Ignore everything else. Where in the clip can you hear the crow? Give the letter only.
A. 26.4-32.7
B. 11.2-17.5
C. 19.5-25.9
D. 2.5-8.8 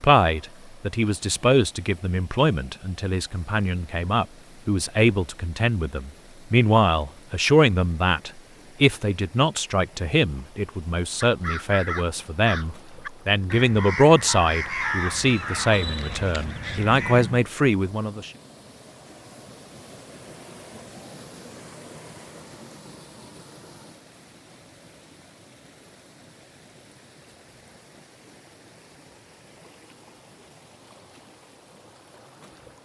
B.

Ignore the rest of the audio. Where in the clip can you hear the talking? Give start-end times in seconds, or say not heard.
0.0-18.3.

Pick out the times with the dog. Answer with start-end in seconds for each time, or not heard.
not heard.